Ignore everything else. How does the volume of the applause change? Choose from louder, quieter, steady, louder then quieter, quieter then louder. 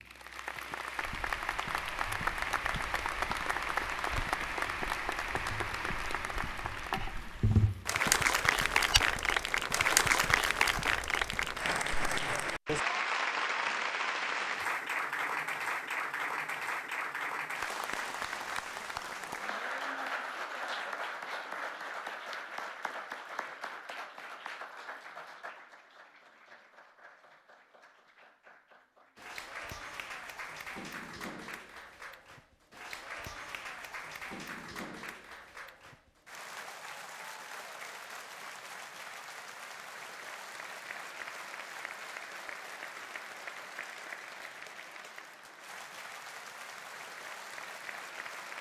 quieter.